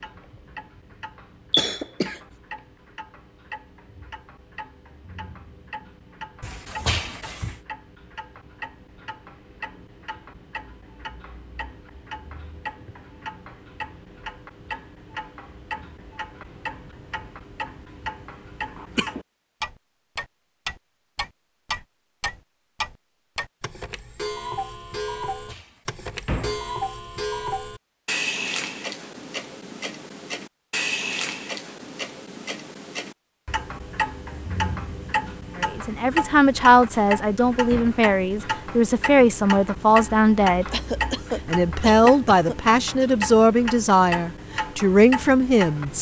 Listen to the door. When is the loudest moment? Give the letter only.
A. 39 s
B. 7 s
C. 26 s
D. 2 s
B.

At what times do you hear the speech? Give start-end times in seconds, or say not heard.
35.6-40.6, 41.5-45.9.